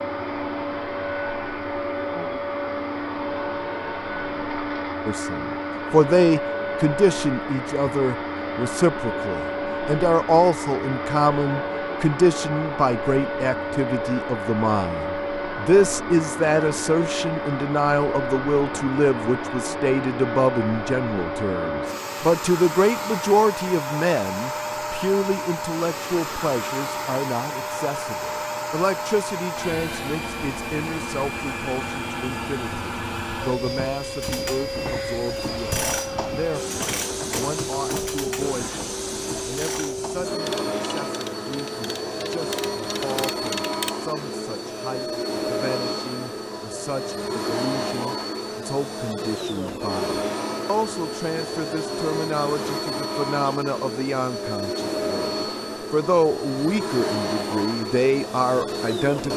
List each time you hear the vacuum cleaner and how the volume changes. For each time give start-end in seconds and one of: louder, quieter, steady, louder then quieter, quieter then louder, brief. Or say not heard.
0.0-59.3 steady.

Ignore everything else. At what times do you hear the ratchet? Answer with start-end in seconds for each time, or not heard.
34.2-44.0.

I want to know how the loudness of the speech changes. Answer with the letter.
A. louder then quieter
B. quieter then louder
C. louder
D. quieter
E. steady
B.